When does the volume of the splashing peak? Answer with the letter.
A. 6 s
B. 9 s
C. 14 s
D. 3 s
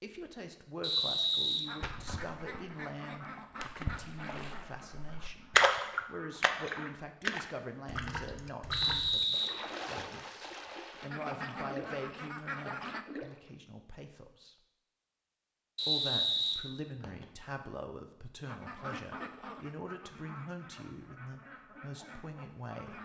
A.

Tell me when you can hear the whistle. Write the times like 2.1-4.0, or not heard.
0.8-2.3, 8.7-10.2, 15.8-17.2.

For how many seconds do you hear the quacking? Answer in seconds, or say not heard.
12 s.